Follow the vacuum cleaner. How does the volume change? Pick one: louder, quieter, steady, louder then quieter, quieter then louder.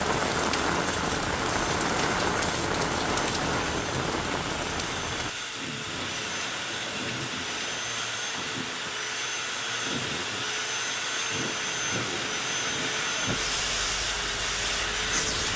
louder.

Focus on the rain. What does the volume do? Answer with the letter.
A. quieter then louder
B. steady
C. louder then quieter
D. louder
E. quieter
E.